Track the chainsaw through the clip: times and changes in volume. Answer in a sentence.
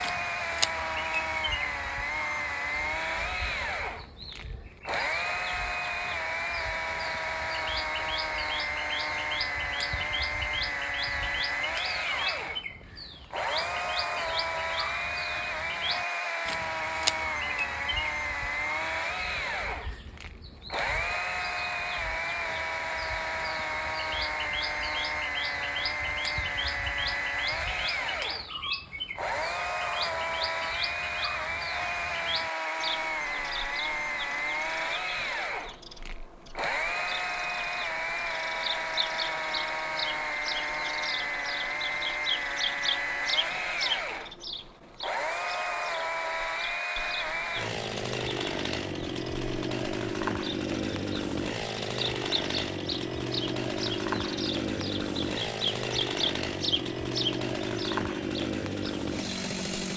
You can hear the chainsaw from 0.0 to 59.9 s, at a steady volume.